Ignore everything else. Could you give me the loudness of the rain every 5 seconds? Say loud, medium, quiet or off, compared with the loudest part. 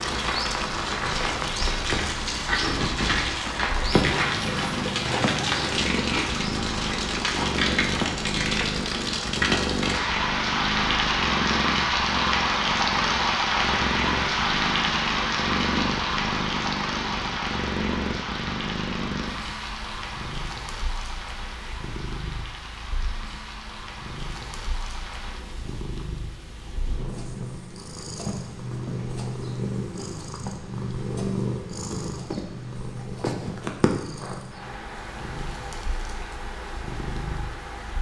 loud, loud, loud, medium, quiet, quiet, quiet, quiet.